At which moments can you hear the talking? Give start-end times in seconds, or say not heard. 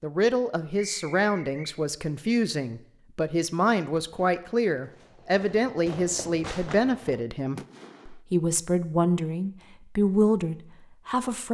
0.0-11.4.